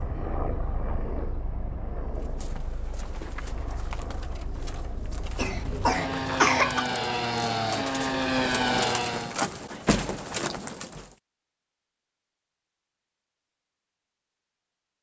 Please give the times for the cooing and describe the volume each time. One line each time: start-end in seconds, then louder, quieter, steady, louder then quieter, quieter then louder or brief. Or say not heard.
2.1-11.1 louder.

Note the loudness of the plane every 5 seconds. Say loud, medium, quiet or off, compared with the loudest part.
medium, loud, off.